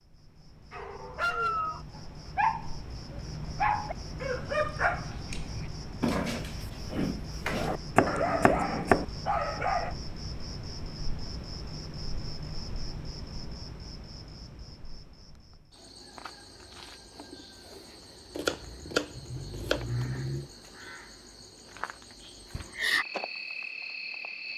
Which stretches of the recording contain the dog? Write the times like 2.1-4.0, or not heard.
0.7-9.9.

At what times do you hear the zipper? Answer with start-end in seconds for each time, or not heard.
not heard.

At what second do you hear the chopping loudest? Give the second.
9 s.